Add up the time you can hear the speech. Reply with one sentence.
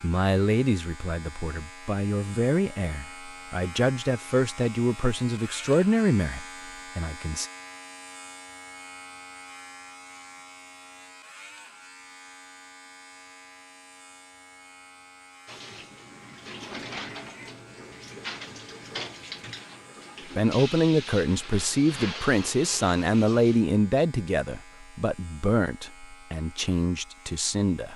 The speech can be heard for 15 seconds in total.